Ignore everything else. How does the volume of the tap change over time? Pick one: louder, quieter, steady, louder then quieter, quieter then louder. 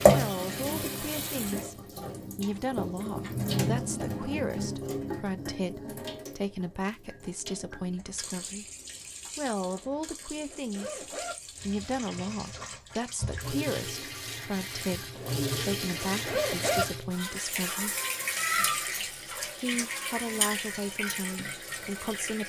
quieter then louder.